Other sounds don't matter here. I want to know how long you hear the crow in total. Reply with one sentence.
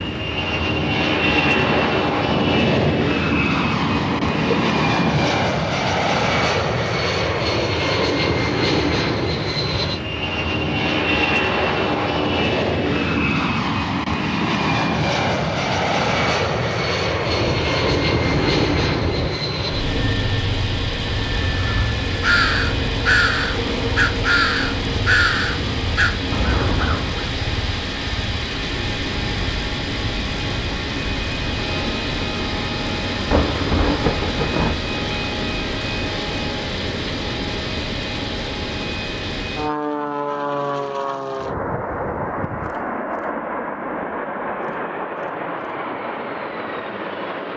The crow can be heard for 6 seconds in total.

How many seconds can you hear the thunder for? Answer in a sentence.
You can hear the thunder for 8 seconds altogether.